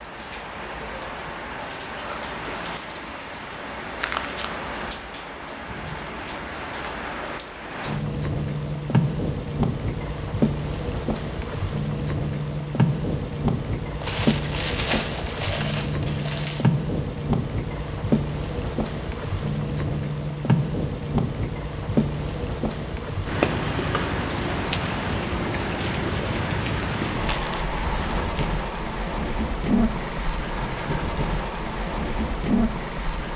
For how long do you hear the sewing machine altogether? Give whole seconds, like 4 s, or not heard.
not heard.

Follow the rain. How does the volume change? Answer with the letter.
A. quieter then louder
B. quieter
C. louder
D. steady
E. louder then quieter
C.